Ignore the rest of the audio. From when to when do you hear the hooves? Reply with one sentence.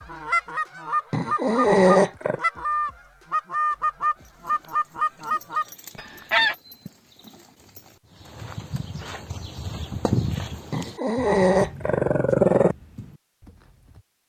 The hooves can be heard from 4.2 to 14.1 s.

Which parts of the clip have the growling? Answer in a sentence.
The growling can be heard from 1.1 to 2.4 s and from 10.7 to 12.8 s.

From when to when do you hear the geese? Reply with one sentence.
You can hear the geese from 0.0 to 6.5 s.